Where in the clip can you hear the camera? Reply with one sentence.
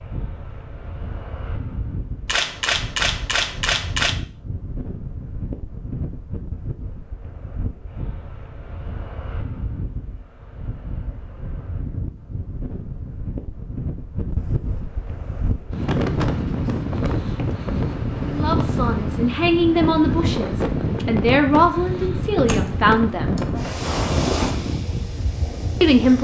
You can hear the camera from 2.2 to 4.2 s and from 22.4 to 23.6 s.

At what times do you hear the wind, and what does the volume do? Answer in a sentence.
The wind can be heard from 0.0 to 26.1 s, getting louder.